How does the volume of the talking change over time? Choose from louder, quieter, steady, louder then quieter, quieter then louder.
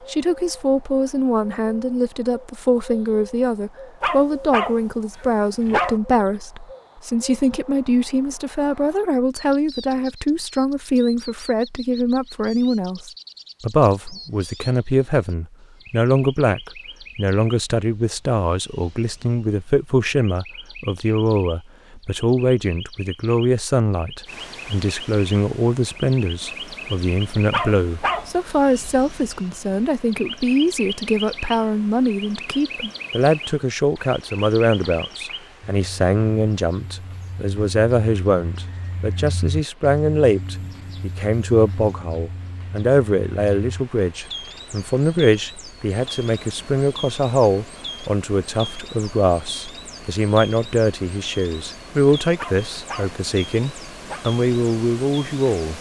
steady.